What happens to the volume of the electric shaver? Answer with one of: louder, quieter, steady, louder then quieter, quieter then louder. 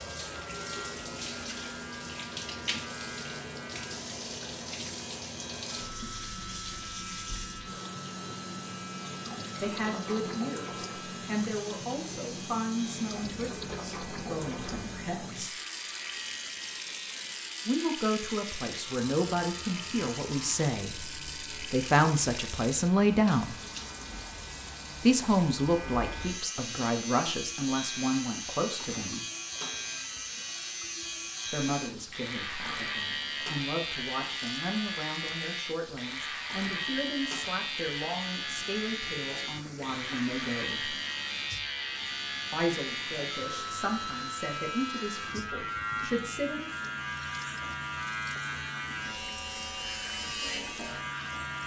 louder.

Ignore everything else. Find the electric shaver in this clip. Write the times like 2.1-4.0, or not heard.
0.0-51.6.